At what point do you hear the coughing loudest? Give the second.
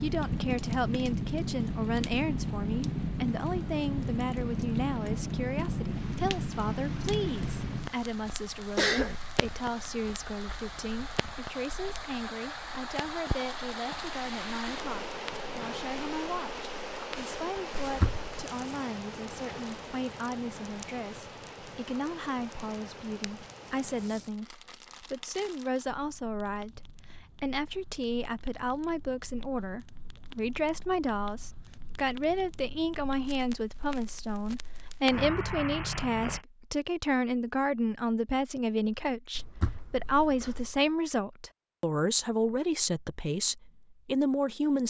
9 s.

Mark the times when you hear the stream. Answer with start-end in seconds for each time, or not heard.
0.0-24.1.